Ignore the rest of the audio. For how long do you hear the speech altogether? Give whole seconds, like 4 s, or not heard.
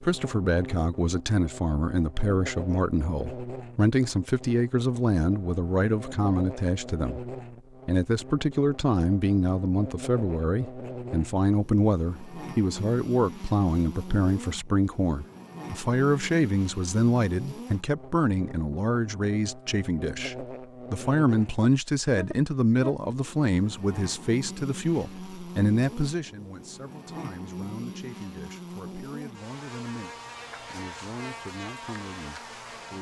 33 s.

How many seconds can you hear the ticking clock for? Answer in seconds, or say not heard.
not heard.